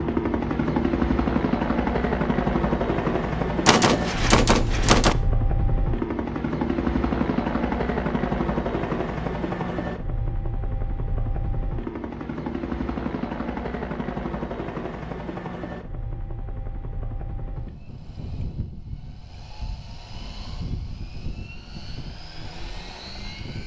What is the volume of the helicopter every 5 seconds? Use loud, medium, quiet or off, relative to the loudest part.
loud, loud, medium, quiet, quiet.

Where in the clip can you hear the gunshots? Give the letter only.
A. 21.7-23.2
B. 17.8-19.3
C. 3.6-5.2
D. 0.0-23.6
C.